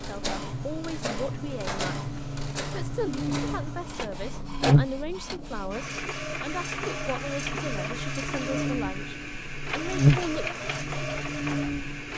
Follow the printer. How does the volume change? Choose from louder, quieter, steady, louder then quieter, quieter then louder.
steady.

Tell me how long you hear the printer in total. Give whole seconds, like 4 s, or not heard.
12 s.